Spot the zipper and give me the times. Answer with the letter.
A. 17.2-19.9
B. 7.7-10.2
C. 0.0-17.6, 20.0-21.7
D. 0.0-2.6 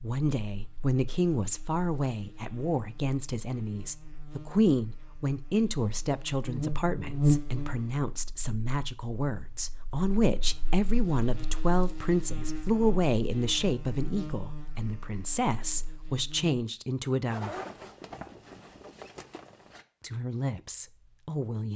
A.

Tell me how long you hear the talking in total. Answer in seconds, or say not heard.
19 s.